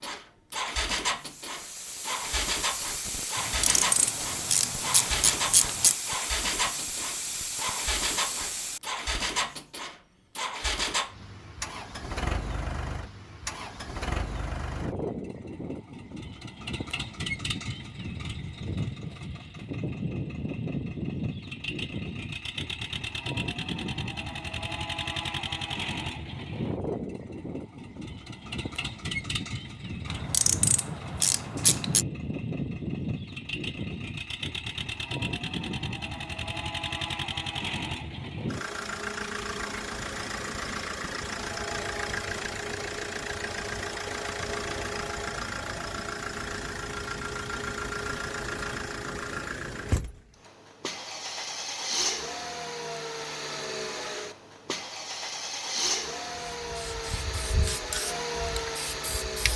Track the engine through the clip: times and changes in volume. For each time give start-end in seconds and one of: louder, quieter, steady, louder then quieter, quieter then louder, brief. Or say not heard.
0.0-59.5 steady.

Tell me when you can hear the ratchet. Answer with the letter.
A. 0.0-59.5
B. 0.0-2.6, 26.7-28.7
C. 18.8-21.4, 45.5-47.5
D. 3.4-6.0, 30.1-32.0
D.